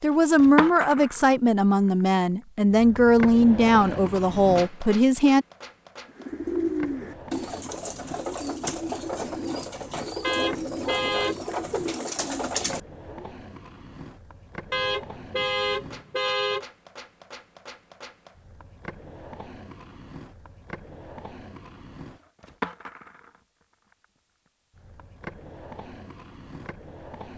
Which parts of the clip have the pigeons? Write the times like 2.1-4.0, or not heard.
6.0-13.3.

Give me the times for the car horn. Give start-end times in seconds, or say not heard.
10.2-11.4, 14.7-16.6.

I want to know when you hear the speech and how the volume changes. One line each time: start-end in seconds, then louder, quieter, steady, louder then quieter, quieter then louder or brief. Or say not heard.
0.0-5.5 steady.